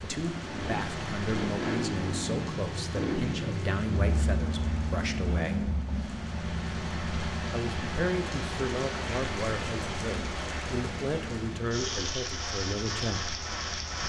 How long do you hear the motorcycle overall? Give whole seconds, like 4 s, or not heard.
14 s.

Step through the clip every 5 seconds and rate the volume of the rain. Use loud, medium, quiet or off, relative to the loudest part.
medium, loud, loud.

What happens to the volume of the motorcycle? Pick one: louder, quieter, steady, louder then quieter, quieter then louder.
quieter.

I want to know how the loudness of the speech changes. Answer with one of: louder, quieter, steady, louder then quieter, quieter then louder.
steady.